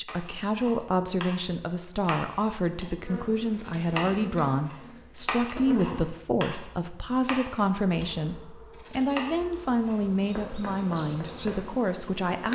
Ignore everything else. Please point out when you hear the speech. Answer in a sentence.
The speech can be heard from 0.0 to 12.5 s.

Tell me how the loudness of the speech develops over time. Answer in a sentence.
The volume of the speech stays about the same.